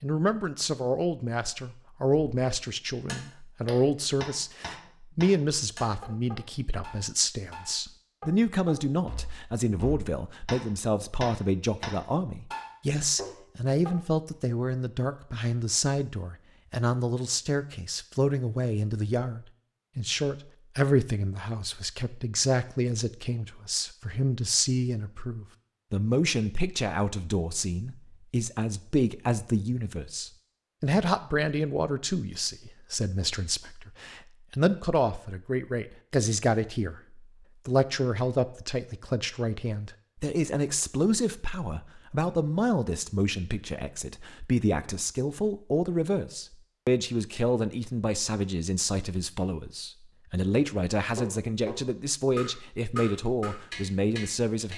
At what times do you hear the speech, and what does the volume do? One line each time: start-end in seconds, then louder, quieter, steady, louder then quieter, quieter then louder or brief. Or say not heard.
0.0-54.7 steady.